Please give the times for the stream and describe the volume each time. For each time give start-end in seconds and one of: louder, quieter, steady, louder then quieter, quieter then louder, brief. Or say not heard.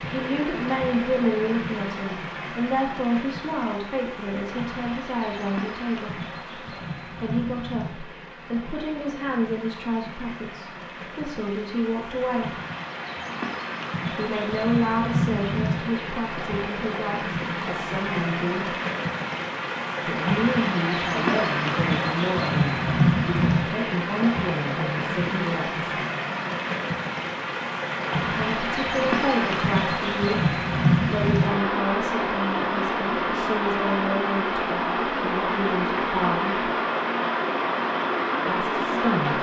0.0-39.3 louder.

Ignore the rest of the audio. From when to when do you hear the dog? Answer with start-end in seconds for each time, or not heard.
not heard.